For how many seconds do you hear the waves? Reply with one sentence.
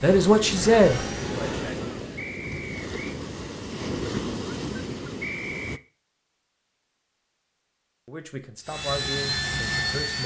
The waves can be heard for 6 seconds in total.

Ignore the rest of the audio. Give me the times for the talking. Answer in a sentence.
The talking can be heard from 0.0 to 1.9 s and from 8.1 to 10.2 s.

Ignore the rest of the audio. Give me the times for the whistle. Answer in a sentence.
You can hear the whistle from 2.1 to 3.1 s and from 5.2 to 5.8 s.